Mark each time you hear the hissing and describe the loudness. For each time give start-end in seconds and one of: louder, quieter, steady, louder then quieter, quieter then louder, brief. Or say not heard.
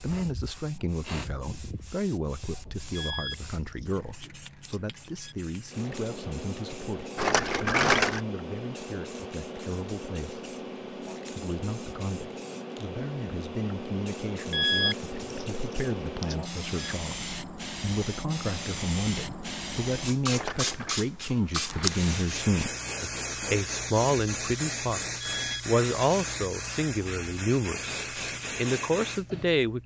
0.0-29.8 louder.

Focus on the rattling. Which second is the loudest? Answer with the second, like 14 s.
8 s.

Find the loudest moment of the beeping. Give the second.
15 s.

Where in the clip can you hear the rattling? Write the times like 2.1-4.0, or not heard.
7.2-8.2, 20.3-21.0.